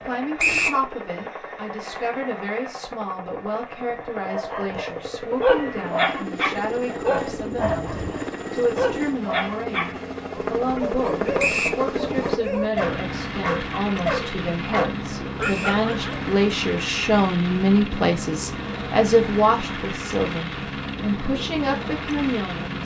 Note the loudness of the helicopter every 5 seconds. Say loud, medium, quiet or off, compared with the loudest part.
medium, loud, loud, loud, loud.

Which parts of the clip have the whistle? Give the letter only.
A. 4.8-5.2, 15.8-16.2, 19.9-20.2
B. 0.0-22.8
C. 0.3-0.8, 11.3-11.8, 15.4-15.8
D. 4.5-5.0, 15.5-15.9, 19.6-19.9
C.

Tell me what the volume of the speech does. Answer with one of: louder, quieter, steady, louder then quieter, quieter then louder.
louder.